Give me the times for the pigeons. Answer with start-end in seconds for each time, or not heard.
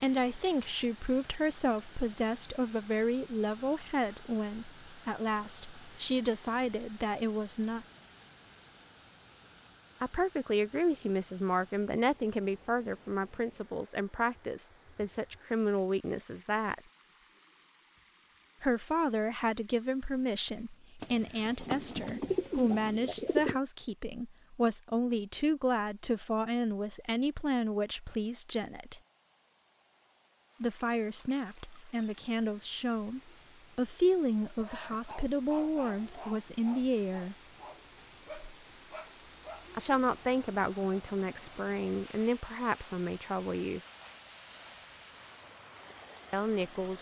21.0-23.6.